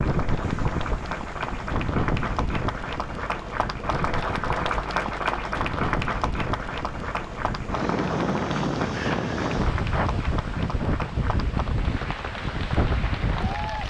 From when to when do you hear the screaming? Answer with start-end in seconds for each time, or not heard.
not heard.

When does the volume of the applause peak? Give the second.
5 s.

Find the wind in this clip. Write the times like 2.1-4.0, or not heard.
0.0-13.8.